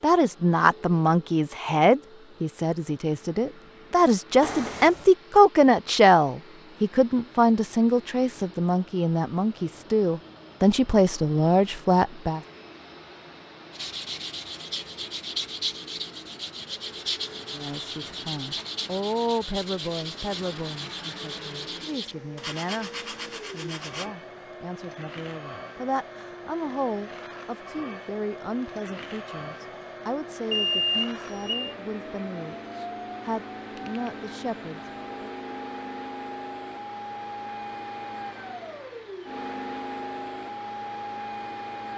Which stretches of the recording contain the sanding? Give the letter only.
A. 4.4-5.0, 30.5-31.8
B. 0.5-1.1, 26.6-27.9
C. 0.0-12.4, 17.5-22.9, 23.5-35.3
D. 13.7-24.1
D.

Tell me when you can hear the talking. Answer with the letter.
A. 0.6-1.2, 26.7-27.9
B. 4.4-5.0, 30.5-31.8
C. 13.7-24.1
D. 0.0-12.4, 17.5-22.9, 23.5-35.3
D.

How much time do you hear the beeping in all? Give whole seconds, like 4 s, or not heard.
2 s.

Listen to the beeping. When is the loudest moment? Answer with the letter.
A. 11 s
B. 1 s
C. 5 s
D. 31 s
D.